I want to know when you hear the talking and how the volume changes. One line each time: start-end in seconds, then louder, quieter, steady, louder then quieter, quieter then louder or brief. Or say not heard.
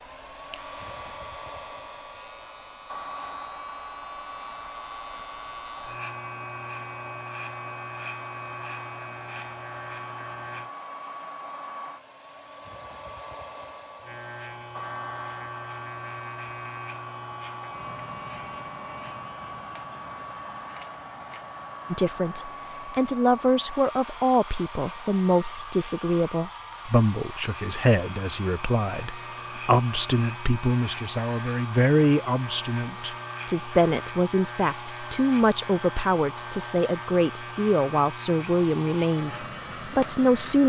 21.9-40.6 steady.